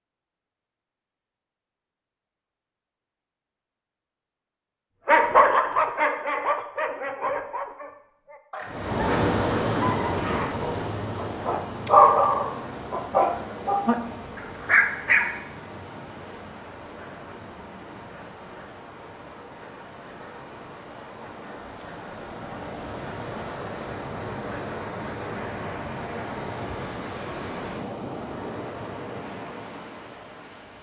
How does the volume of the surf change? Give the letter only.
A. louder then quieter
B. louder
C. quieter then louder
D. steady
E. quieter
C.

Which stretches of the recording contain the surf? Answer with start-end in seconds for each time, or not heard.
8.7-30.7.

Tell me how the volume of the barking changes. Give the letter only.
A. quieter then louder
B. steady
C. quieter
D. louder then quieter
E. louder
A.